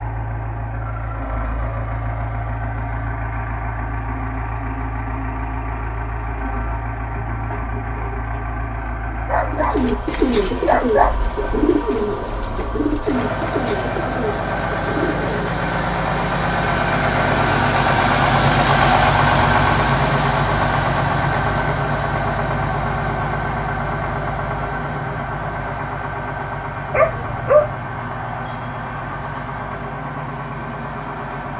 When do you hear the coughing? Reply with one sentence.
The coughing can't be heard in this clip.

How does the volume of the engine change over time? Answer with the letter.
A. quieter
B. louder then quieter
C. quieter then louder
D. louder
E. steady
B.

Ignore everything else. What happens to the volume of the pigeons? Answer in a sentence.
The loudness of the pigeons goes down.